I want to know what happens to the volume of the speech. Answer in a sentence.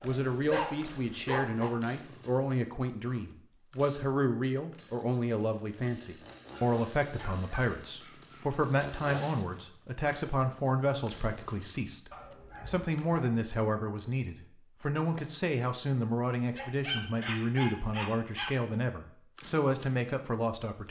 The volume of the speech stays about the same.